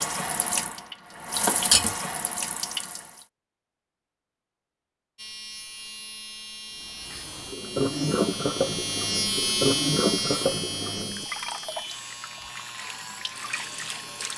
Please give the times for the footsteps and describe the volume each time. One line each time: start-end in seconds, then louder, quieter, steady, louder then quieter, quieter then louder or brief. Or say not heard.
not heard.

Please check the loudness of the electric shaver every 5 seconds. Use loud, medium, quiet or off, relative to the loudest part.
off, loud, loud.